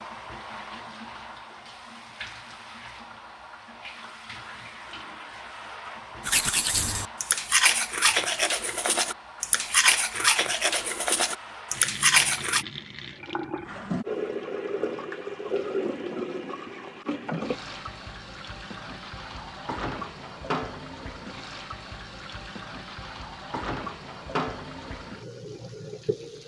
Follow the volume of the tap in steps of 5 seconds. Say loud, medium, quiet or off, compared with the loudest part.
medium, medium, loud, loud, loud, medium.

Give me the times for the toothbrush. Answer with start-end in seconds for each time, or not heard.
6.2-12.7.